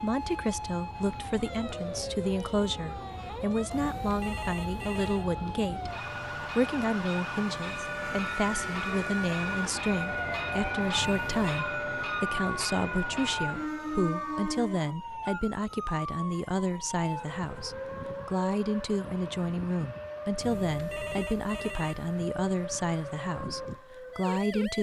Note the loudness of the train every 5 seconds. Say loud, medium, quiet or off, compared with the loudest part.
quiet, loud, loud, off, off.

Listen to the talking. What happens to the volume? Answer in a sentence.
The volume of the talking stays about the same.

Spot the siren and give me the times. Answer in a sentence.
You can hear the siren from 0.0 to 24.7 s.